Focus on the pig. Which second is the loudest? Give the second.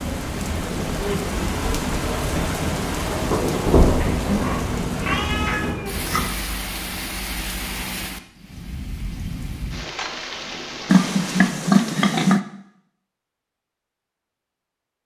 12 s.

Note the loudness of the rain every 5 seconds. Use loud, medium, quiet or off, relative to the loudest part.
loud, medium, medium.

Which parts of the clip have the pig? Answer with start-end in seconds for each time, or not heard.
4.0-5.7, 10.8-12.4.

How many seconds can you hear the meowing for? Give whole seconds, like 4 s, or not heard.
2 s.